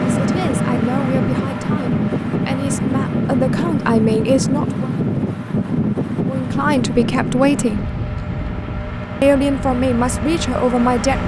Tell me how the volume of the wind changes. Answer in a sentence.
The loudness of the wind goes down.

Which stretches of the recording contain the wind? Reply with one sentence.
The wind can be heard from 0.0 to 11.2 s.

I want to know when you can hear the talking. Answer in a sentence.
The talking can be heard from 0.0 to 4.9 s, from 6.2 to 7.9 s and from 9.2 to 11.2 s.